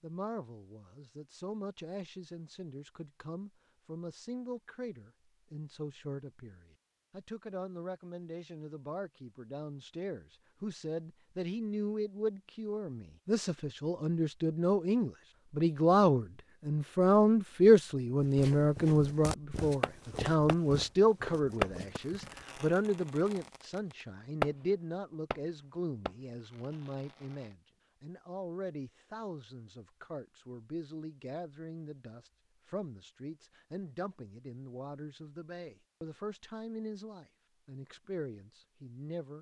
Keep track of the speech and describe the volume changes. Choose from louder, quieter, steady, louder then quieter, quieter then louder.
louder then quieter.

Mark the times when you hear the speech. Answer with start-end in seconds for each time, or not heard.
0.0-39.3.